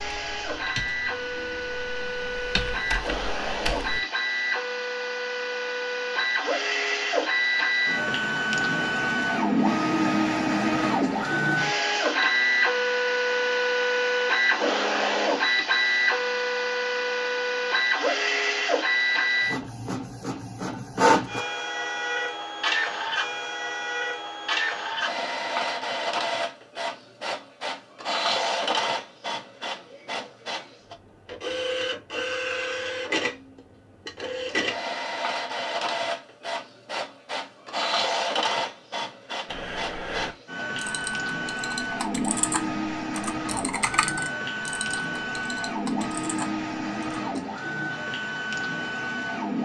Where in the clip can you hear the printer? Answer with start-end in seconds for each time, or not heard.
0.0-49.6.